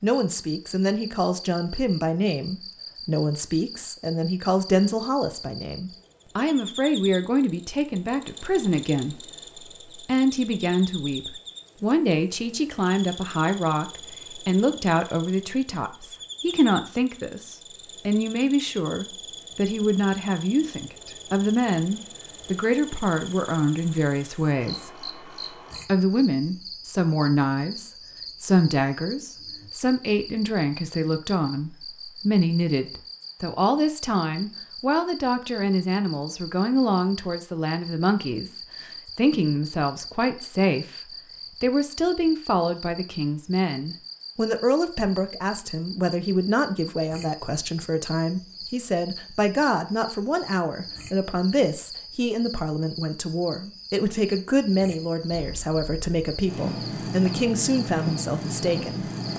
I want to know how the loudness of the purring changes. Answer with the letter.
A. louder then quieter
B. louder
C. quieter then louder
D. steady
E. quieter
B.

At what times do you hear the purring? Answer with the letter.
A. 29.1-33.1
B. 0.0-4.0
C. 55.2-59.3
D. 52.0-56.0
C.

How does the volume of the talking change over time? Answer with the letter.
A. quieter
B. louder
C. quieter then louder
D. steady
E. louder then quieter
D.